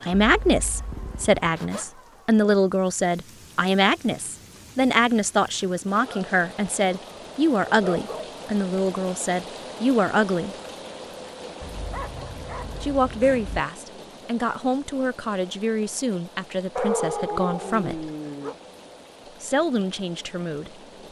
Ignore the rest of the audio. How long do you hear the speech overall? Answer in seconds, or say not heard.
17 s.